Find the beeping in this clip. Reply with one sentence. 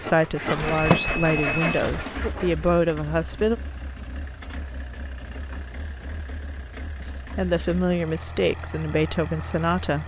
You can hear the beeping from 0.6 to 2.1 s.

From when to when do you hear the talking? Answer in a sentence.
You can hear the talking from 0.0 to 3.5 s and from 7.0 to 10.0 s.